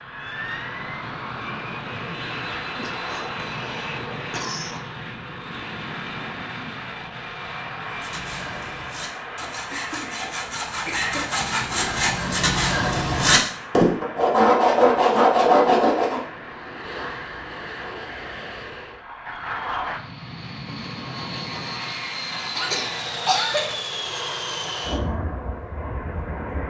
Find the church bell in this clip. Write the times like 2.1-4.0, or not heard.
not heard.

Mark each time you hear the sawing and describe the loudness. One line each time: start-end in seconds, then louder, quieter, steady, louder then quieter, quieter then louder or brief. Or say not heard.
7.9-16.2 louder.